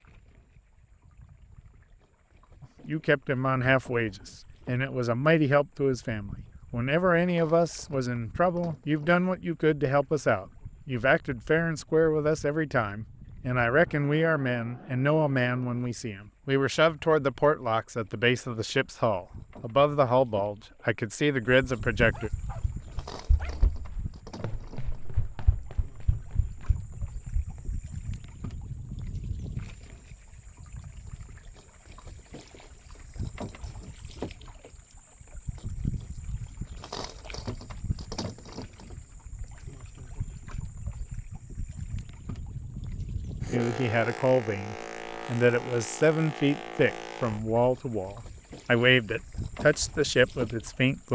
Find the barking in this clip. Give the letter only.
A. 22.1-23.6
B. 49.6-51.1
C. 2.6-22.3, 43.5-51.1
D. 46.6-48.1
A.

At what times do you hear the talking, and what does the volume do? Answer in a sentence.
You can hear the talking from 2.6 to 22.3 s, at a steady volume; and from 43.5 to 51.1 s, at a steady volume.